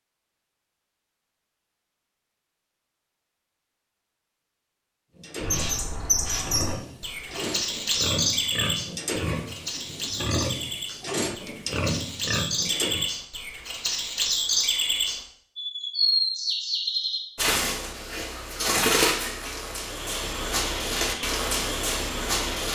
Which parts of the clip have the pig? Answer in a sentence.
You can hear the pig from 5.2 to 13.1 s.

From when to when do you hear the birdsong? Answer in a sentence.
The birdsong can be heard from 5.4 to 22.7 s.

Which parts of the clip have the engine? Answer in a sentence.
You can hear the engine from 19.8 to 22.7 s.